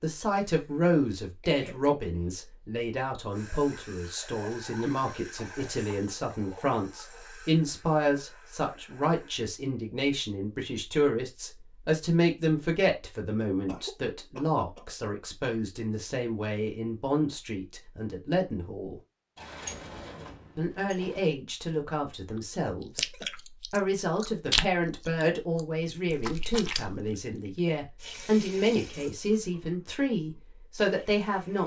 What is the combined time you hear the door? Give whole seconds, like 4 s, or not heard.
2 s.